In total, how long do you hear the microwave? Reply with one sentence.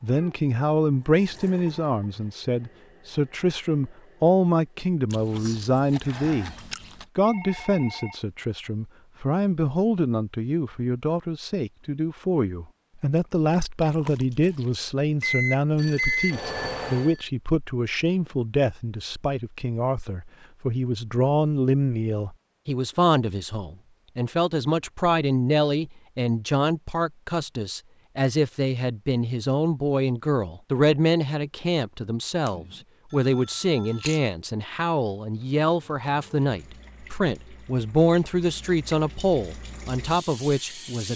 You can hear the microwave for 2 seconds altogether.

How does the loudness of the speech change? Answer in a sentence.
The volume of the speech stays about the same.